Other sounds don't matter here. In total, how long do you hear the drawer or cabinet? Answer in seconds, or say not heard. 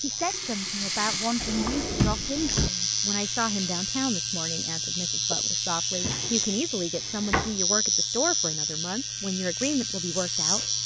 3 s.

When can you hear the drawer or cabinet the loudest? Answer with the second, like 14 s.
2 s.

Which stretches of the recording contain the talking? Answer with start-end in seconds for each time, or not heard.
0.0-10.8.